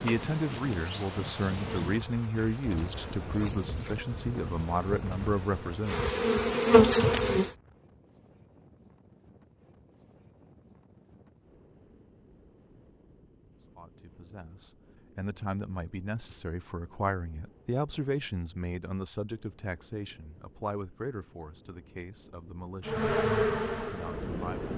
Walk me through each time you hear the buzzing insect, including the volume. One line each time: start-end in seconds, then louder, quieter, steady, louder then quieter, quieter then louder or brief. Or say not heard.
0.0-7.5 louder
22.9-24.7 brief.